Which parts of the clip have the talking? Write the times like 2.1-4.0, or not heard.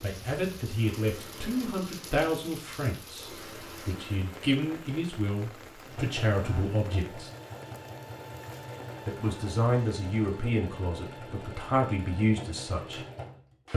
0.0-7.3, 9.1-13.0.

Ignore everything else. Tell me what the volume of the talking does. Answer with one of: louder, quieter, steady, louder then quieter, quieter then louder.
steady.